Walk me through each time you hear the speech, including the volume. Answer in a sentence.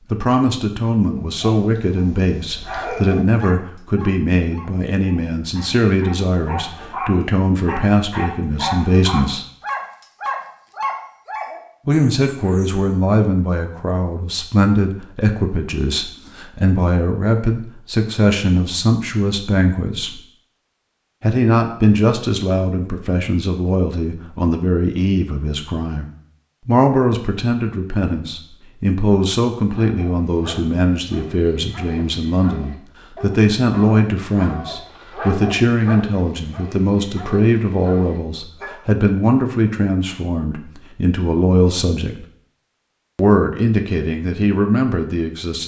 You can hear the speech from 0.1 to 9.4 s, at a steady volume; from 11.8 to 20.2 s, at a steady volume; from 21.2 to 42.2 s, at a steady volume; and briefly from 43.1 to 45.6 s.